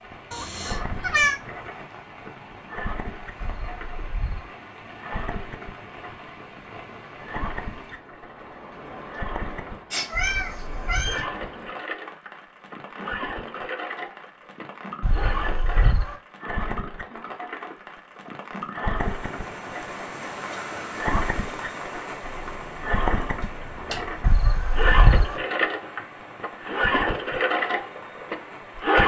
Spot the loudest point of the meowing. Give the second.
1 s.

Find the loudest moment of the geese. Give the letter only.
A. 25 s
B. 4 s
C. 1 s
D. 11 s
A.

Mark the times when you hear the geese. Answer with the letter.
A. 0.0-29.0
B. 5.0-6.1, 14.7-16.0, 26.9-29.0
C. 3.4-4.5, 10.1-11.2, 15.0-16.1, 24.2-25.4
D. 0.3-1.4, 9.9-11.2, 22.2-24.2
C.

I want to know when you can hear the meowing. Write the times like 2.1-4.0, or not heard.
0.3-1.4, 9.9-11.2, 22.2-24.2.